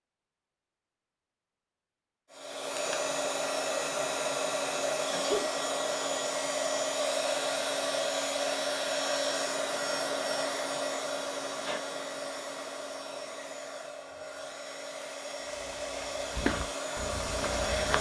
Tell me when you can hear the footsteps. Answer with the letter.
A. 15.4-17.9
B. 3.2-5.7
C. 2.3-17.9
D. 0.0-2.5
A.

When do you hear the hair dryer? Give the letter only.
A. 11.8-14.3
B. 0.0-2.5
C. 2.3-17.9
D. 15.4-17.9
C.